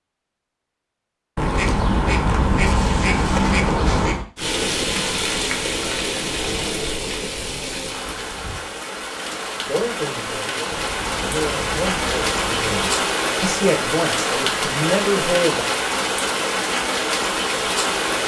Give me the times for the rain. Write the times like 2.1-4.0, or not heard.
4.3-18.2.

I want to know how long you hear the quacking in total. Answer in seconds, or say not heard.
5 s.